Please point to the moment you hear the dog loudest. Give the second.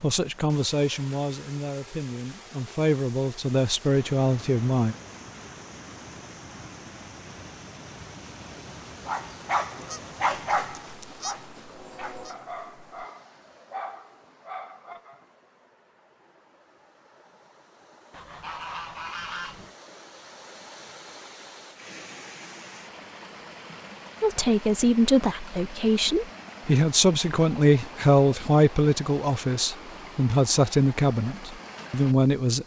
10 s.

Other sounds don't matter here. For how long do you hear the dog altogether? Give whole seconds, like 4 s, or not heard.
6 s.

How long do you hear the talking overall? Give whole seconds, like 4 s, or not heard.
13 s.